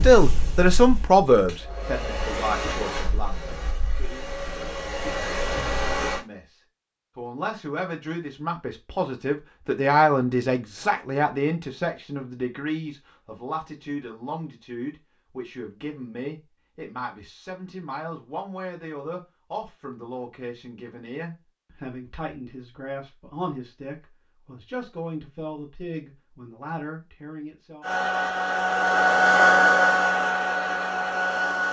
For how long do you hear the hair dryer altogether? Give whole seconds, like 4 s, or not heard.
10 s.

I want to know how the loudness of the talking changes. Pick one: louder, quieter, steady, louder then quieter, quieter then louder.
quieter.